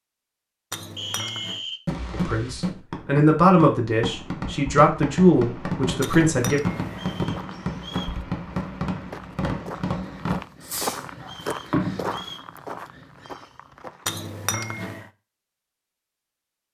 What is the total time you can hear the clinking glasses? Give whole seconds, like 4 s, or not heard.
3 s.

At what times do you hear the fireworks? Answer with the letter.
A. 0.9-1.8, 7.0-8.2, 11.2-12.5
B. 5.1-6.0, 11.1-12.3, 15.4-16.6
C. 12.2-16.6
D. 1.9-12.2
D.